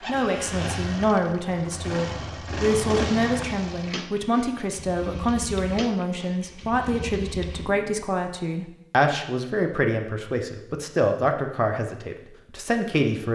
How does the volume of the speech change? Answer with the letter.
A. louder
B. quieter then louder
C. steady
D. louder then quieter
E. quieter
C.